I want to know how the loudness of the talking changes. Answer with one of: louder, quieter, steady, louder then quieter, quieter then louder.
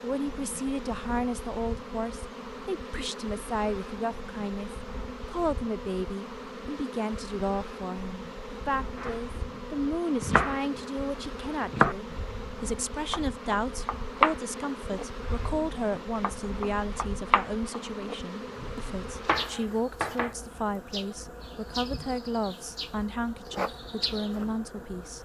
steady.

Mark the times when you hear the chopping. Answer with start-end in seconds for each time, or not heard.
8.9-20.4.